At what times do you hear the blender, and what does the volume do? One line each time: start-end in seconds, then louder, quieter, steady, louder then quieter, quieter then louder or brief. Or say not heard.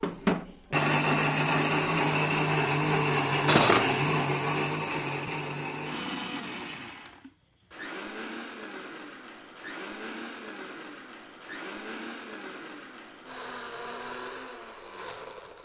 0.0-15.5 quieter.